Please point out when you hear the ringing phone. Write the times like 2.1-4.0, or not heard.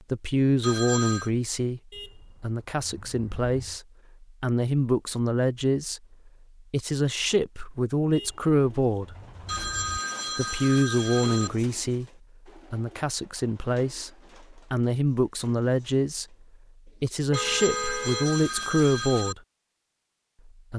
0.6-1.3, 9.4-11.5, 17.3-19.4.